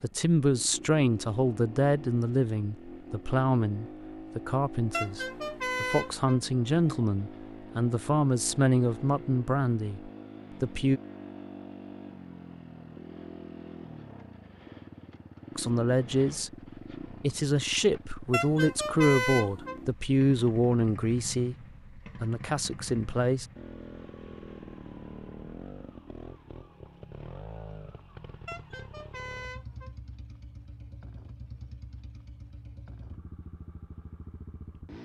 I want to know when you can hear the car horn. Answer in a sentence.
The car horn can be heard from 4.9 to 6.4 s, from 18.3 to 19.8 s and from 28.4 to 29.9 s.